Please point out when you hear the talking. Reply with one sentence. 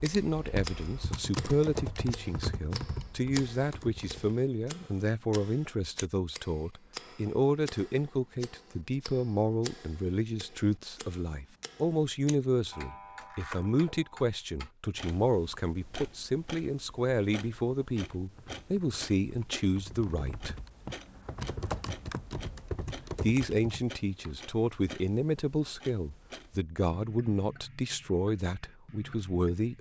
You can hear the talking from 0.0 to 20.6 s and from 23.2 to 29.7 s.